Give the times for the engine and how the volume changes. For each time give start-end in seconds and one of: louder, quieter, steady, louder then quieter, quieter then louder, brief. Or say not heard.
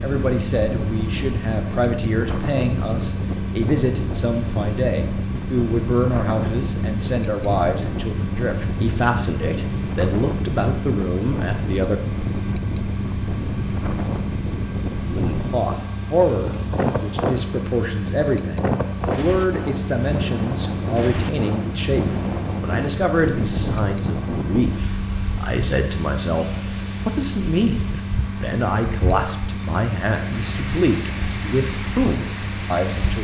0.0-33.1 steady.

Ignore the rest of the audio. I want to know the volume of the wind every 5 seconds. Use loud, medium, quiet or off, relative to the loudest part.
loud, loud, loud, loud, loud, medium, medium.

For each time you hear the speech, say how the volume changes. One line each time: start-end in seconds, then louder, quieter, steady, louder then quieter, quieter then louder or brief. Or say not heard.
0.0-12.0 steady
15.1-33.1 steady.